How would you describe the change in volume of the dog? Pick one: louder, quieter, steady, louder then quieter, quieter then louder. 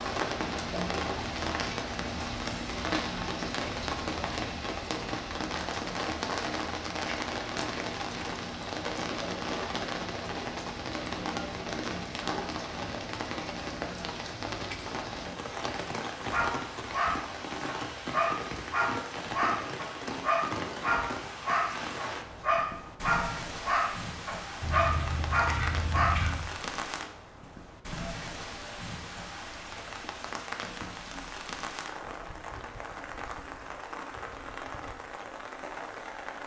steady.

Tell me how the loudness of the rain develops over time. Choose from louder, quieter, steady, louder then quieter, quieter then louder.
quieter.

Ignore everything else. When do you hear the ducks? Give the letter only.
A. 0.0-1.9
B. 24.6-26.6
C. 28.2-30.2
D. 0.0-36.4
B.